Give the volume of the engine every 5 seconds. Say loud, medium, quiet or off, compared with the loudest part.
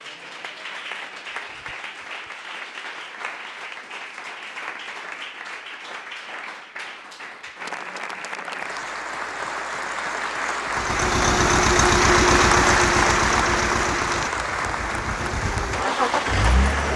off, off, loud, loud.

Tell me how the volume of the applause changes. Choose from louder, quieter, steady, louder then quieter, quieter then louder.
louder.